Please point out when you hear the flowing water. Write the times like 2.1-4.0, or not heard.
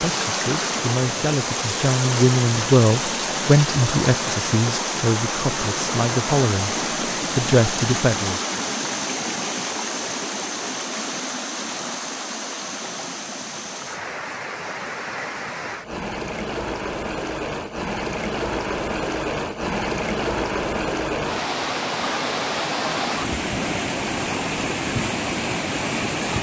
0.0-26.3.